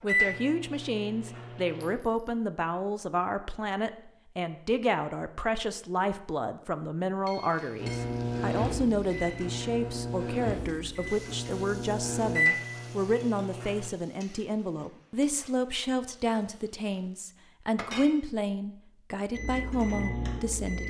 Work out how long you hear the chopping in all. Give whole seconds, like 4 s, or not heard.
not heard.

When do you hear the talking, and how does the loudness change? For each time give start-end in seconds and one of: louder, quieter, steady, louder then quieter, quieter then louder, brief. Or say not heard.
0.0-20.8 steady.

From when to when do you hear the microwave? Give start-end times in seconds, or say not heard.
0.0-1.9, 7.8-13.9, 19.4-20.8.